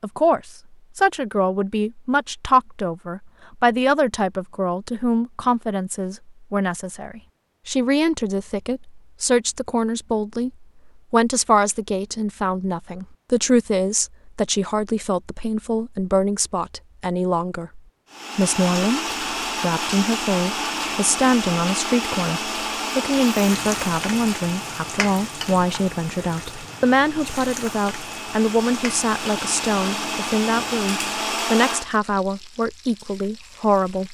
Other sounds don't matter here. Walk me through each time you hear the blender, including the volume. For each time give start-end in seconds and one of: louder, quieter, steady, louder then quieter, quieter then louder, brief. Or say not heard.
18.1-31.9 quieter then louder.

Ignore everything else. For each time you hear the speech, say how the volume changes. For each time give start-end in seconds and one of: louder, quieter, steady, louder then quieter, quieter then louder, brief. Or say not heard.
0.0-34.0 steady.